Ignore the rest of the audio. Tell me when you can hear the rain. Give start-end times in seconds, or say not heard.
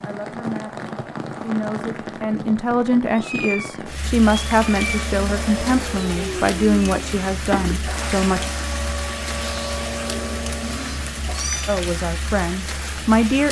0.0-13.4.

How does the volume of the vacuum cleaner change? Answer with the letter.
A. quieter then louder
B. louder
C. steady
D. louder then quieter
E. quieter
C.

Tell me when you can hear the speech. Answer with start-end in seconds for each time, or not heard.
0.0-8.4, 11.7-13.4.